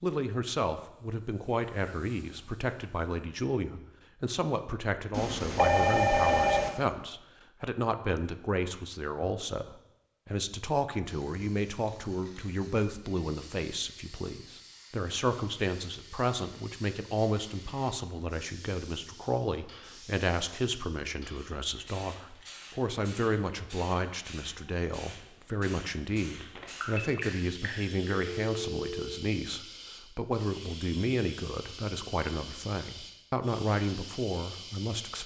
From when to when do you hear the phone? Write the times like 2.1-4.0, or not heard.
5.1-6.7, 26.6-29.1.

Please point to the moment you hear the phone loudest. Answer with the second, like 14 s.
6 s.